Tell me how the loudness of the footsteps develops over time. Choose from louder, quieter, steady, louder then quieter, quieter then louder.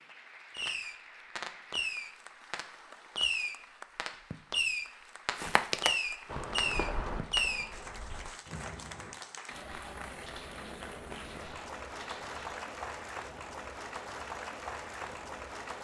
quieter.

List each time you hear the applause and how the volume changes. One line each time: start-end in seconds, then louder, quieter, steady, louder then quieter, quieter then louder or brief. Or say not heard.
0.0-15.7 louder.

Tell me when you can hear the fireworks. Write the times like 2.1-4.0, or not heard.
0.5-7.7.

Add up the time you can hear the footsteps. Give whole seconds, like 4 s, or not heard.
7 s.